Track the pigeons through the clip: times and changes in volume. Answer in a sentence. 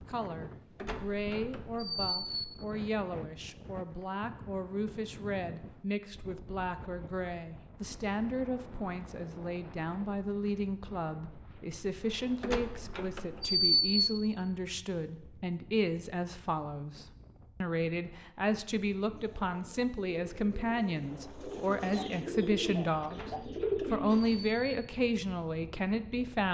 The pigeons can be heard from 19.1 to 24.6 s, getting louder.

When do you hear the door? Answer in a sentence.
The door can be heard from 0.8 to 2.4 s, from 12.4 to 14.0 s and from 23.1 to 24.8 s.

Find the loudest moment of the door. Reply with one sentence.
The volume of the door peaks at 14 seconds.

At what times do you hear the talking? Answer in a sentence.
The talking can be heard from 0.0 to 26.4 s.